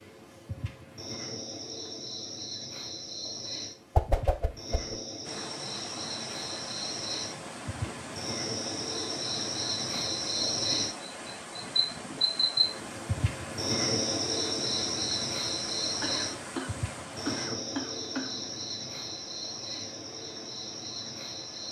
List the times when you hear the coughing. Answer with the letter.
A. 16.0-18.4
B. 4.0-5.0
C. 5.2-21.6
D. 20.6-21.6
A.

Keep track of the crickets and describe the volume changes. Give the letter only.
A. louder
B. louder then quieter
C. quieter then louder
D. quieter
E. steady
B.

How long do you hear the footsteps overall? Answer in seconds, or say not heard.
not heard.